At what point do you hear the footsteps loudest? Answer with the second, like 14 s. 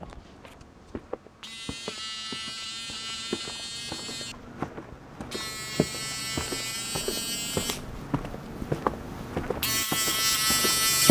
9 s.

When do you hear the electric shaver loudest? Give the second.
11 s.